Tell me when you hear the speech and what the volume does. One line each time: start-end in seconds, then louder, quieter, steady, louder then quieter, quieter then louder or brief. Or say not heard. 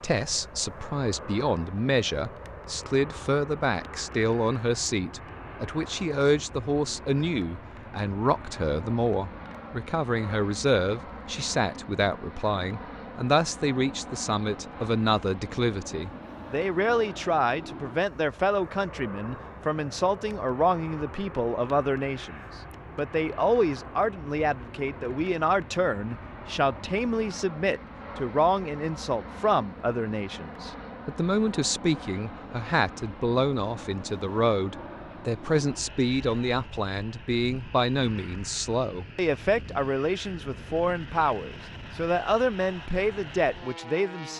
0.0-44.3 steady.